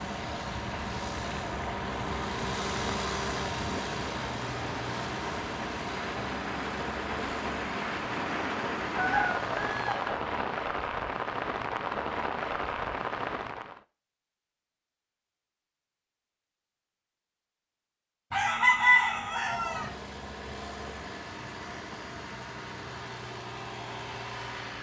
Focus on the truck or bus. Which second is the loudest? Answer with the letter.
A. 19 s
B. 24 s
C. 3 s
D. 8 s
C.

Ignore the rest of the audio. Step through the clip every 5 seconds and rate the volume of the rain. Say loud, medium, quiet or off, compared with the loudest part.
medium, loud, loud, off, off.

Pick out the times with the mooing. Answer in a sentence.
The mooing can't be heard in this clip.